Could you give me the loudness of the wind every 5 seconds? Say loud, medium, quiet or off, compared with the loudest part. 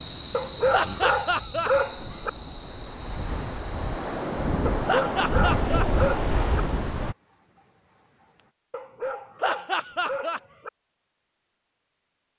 medium, loud, off.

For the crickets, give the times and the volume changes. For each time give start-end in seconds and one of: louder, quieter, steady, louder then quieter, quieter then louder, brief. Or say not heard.
0.0-8.6 quieter.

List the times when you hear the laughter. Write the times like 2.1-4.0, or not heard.
0.7-1.7, 4.8-5.8, 9.4-10.4.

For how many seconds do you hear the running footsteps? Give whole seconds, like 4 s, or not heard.
not heard.